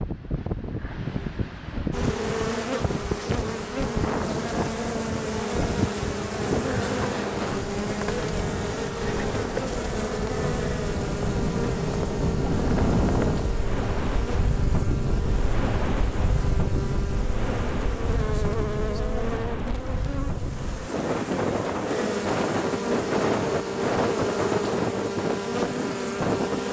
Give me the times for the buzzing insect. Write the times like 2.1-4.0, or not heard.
1.9-26.6.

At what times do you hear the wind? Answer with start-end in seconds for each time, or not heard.
0.0-26.6.